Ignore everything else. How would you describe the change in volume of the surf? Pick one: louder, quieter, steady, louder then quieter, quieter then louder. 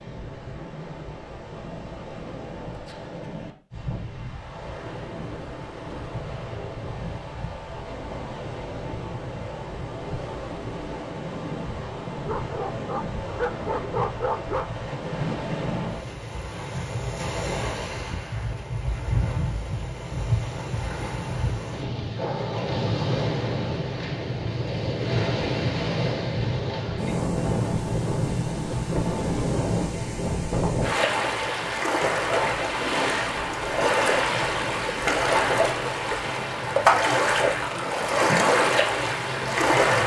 louder.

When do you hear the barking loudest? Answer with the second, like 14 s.
14 s.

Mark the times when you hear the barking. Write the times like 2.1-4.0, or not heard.
12.2-14.8.